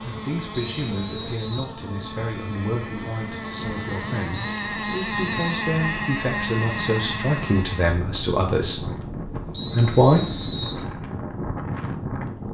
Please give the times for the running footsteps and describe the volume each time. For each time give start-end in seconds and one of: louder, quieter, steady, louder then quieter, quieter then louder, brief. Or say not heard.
not heard.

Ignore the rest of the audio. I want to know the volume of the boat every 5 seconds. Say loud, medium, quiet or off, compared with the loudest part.
medium, loud, off.